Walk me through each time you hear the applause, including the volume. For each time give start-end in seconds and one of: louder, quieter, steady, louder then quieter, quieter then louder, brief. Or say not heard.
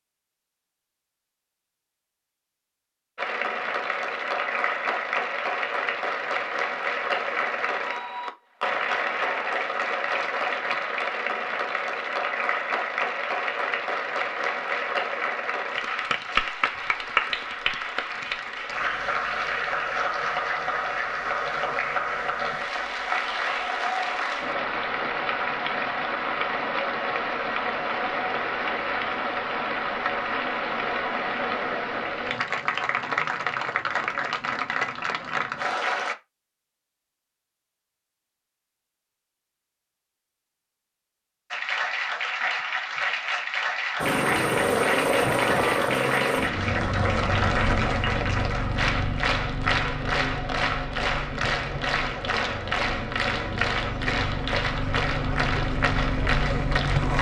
3.1-36.1 steady
41.5-57.1 steady.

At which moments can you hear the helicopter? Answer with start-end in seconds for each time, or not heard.
44.0-57.1.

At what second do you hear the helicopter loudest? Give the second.
45 s.